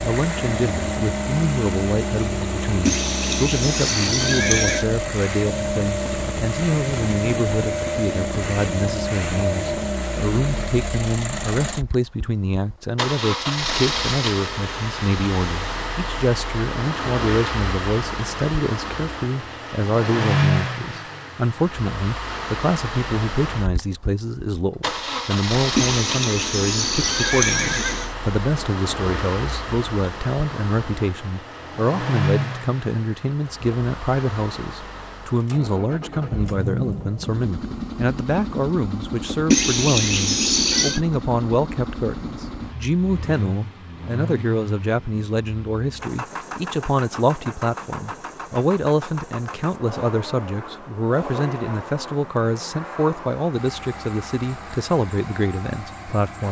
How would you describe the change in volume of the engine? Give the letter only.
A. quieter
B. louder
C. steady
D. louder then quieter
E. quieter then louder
A.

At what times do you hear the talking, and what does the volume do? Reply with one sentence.
The talking can be heard from 0.0 to 56.4 s, at a steady volume.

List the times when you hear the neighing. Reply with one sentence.
You can hear the neighing from 2.9 to 4.8 s, from 25.8 to 28.1 s and from 39.5 to 41.0 s.